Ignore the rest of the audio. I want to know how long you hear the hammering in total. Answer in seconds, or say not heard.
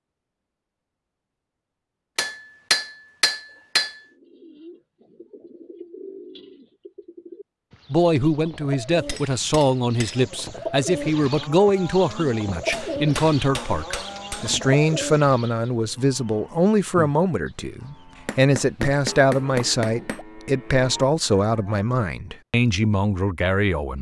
7 s.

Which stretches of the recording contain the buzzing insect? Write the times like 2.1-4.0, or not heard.
not heard.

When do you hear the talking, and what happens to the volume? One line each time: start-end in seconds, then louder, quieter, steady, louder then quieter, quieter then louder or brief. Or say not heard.
7.9-23.9 steady.